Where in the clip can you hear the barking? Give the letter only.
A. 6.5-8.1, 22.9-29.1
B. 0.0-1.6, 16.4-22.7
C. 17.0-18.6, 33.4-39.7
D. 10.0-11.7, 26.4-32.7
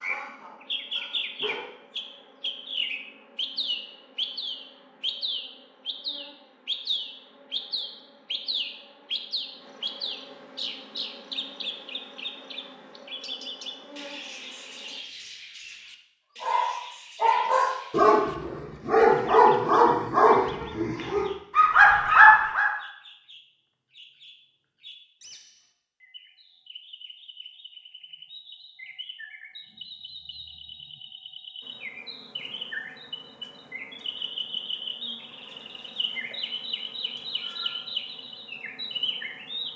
B.